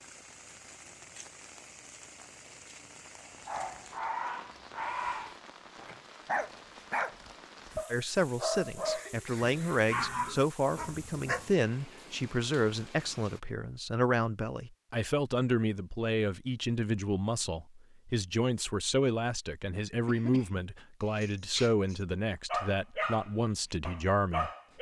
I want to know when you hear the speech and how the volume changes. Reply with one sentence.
You can hear the speech from 7.9 to 24.5 s, at a steady volume.